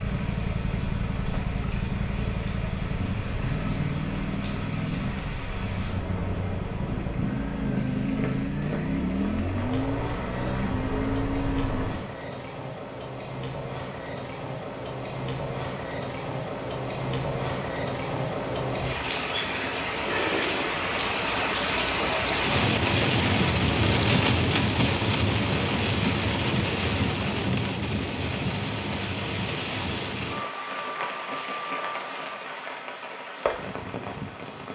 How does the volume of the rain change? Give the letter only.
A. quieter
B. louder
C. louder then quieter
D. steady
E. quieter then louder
C.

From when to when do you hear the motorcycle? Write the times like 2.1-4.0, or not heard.
0.0-12.1.